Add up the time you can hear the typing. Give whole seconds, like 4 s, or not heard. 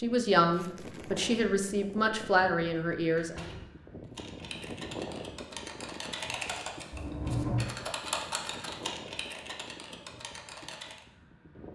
7 s.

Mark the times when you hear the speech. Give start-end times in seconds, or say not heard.
0.0-3.5.